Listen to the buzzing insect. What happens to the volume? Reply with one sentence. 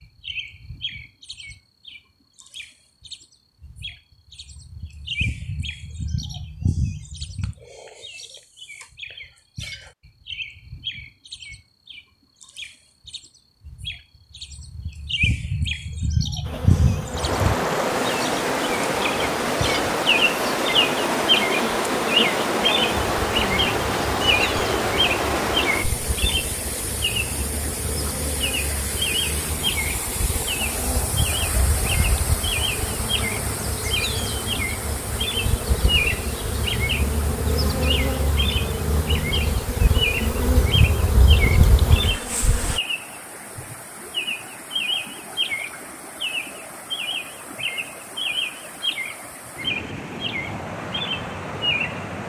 The loudness of the buzzing insect goes up.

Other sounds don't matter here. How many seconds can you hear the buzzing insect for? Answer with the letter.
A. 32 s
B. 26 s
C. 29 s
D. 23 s
B.